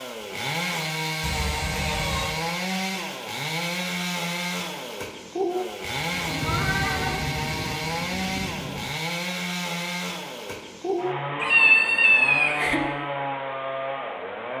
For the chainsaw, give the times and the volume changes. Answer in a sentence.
The chainsaw can be heard from 0.0 to 14.5 s, at a steady volume.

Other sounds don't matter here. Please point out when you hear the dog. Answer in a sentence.
The dog can't be heard in this clip.